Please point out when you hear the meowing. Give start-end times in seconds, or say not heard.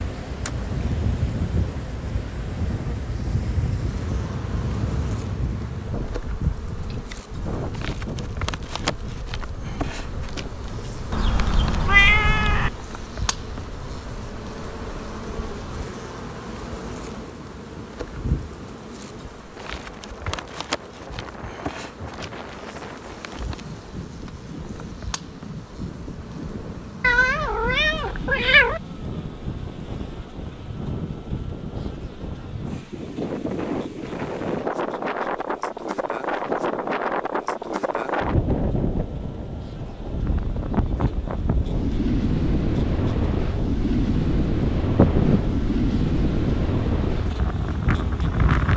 11.1-12.7, 27.0-28.8, 45.0-45.6.